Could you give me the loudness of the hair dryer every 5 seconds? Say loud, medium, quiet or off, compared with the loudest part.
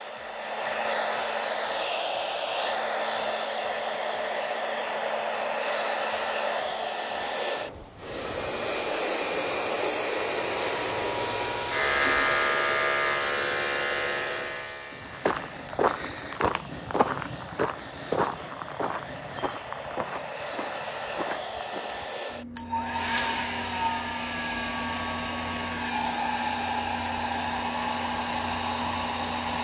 loud, loud, loud, quiet, loud, loud.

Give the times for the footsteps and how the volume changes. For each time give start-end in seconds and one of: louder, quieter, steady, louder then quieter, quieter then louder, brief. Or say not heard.
14.9-22.2 quieter.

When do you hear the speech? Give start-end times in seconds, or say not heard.
not heard.